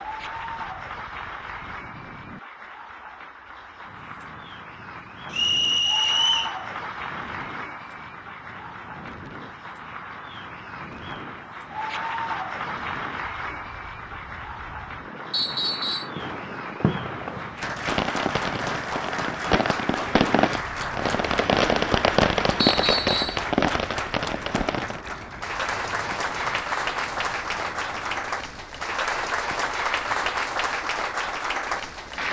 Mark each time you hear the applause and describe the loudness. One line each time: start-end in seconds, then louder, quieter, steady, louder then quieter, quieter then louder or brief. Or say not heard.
0.0-32.2 louder.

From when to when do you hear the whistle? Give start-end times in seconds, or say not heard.
5.3-6.5, 15.3-16.1, 22.6-23.4.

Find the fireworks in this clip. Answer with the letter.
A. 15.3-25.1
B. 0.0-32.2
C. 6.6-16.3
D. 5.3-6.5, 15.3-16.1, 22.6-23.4
A.